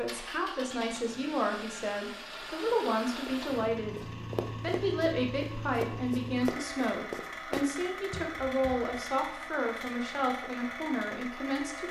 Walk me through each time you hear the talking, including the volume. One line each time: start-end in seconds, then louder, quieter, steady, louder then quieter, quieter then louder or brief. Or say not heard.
0.0-11.8 steady.